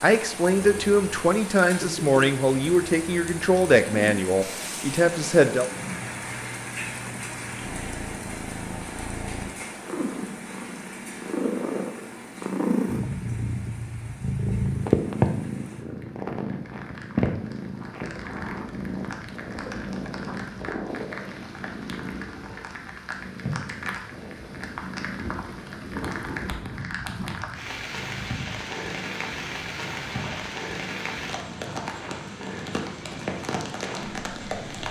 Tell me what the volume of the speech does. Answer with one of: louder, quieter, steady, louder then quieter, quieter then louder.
steady.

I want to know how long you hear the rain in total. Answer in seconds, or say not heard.
35 s.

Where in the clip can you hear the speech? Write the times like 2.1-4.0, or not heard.
0.0-5.7.